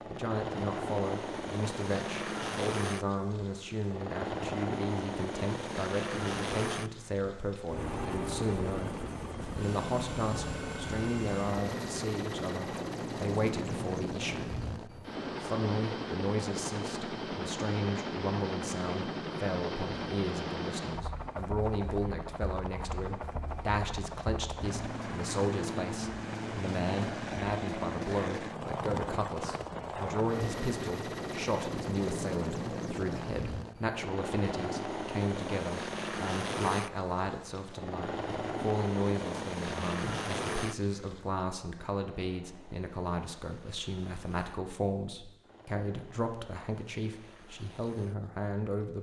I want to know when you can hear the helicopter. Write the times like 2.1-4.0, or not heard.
0.0-48.9.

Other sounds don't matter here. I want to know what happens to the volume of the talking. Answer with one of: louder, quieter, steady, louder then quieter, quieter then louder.
steady.